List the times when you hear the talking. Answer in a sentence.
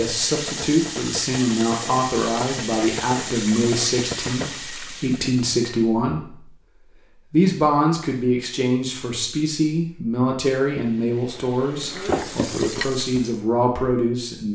The talking can be heard from 0.0 to 6.6 s and from 7.3 to 14.5 s.